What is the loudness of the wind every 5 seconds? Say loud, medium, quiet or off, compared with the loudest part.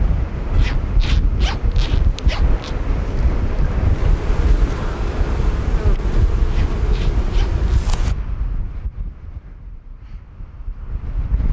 loud, loud, medium.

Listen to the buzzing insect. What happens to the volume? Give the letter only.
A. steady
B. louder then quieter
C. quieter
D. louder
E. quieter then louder
D.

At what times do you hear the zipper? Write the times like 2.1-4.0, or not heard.
0.5-2.8, 6.5-7.7.